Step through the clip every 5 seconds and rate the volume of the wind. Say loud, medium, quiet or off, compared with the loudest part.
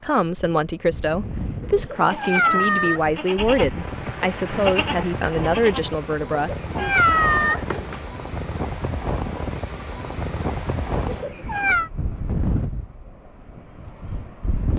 medium, loud, loud.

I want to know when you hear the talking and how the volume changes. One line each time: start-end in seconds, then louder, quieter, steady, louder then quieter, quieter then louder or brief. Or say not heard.
0.0-7.0 steady.